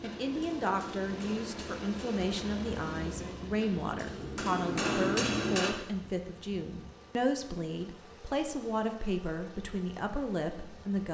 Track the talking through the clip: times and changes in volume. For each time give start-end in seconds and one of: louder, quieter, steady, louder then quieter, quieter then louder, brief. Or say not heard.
0.0-11.0 steady.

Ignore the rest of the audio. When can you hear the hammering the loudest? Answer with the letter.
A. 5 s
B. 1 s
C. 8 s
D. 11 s
A.